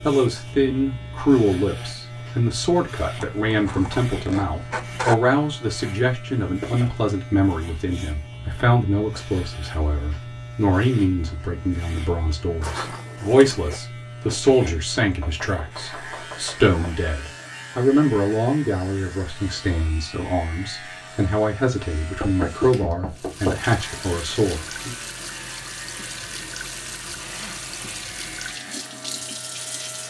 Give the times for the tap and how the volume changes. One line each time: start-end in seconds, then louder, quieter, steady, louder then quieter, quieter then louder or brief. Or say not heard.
23.1-30.0 steady.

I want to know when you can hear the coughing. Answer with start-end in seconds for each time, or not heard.
not heard.